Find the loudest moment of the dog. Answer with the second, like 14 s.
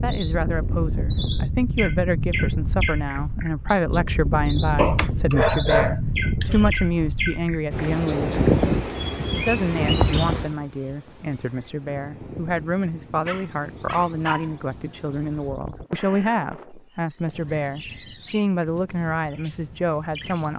6 s.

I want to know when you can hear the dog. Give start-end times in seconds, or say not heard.
4.8-6.7, 13.2-14.6.